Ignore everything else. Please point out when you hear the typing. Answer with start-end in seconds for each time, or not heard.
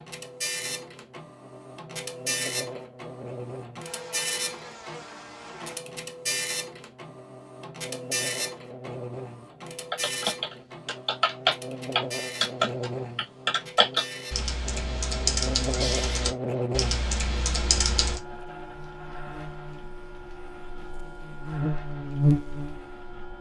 9.9-18.2.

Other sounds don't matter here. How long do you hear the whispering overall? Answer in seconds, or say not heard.
not heard.